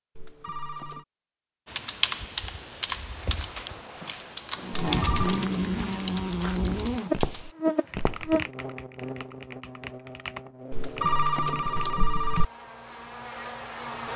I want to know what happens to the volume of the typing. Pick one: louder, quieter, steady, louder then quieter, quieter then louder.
quieter.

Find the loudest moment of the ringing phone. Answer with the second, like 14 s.
11 s.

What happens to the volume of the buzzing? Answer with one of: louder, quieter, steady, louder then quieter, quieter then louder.
quieter.